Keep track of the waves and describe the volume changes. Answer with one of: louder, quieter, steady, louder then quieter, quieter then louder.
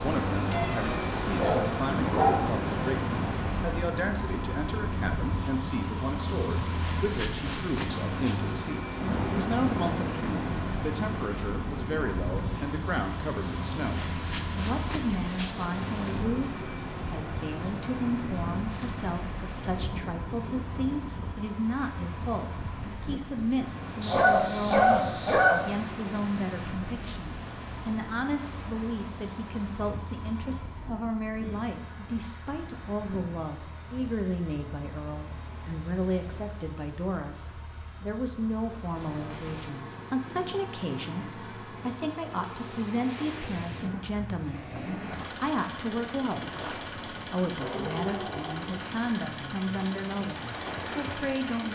quieter then louder.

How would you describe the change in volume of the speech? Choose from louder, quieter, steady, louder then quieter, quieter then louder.
steady.